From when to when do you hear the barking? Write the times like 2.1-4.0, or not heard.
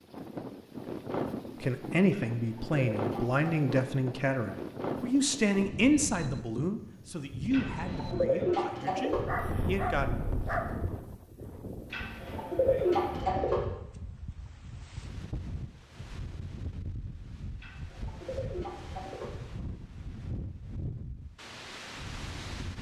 9.1-10.9.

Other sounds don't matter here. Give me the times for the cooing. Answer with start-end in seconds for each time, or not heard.
2.1-3.9, 7.5-9.2, 11.9-13.7, 17.6-19.4.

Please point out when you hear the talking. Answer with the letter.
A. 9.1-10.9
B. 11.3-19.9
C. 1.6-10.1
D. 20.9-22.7
C.